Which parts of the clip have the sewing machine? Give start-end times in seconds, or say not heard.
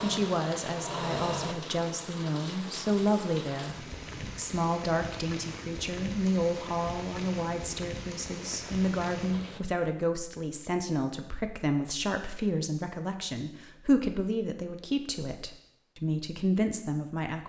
0.0-1.6.